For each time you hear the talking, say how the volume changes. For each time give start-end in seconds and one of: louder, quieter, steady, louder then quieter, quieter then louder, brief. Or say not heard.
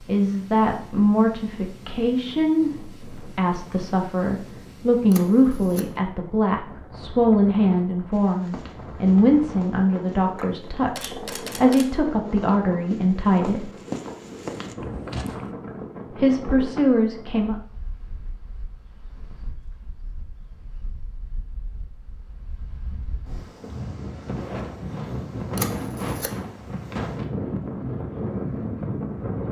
0.0-13.7 steady
16.1-17.6 brief.